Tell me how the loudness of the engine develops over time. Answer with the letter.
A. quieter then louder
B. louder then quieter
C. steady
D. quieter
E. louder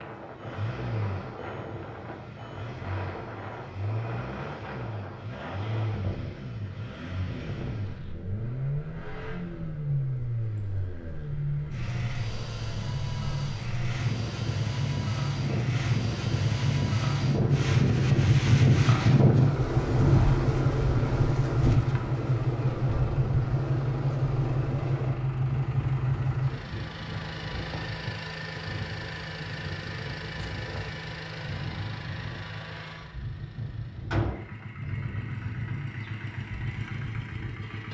B.